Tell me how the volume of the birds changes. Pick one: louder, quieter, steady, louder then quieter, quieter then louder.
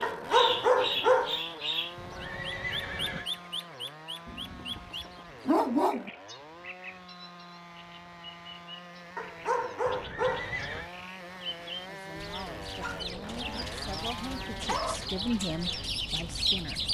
quieter then louder.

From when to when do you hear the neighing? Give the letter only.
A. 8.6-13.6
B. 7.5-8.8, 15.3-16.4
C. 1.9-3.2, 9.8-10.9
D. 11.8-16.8
C.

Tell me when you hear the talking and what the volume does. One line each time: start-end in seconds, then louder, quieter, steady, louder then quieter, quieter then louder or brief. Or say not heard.
11.8-16.8 louder then quieter.